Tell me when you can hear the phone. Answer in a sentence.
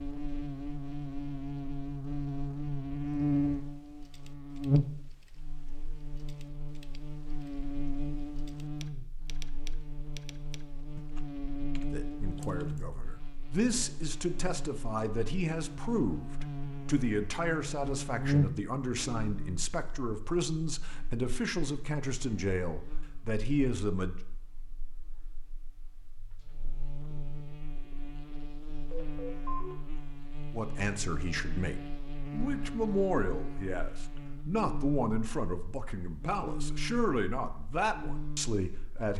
The phone can be heard from 28.9 to 29.8 s.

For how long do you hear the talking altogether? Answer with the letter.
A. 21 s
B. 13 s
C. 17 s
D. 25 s
A.